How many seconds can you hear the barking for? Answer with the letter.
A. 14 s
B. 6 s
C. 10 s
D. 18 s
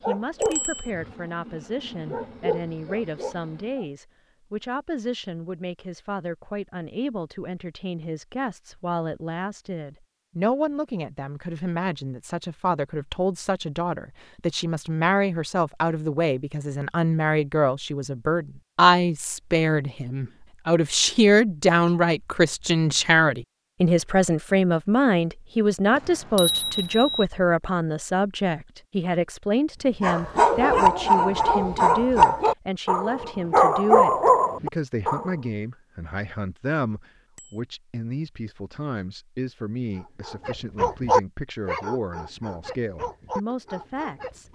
A.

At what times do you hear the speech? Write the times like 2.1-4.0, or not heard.
0.1-44.5.